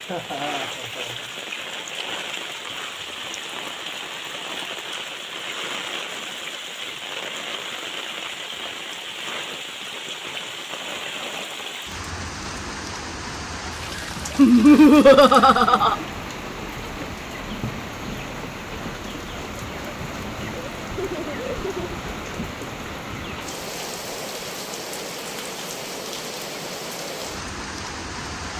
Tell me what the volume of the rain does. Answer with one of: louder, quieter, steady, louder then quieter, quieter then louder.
steady.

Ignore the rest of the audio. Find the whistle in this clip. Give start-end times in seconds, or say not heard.
not heard.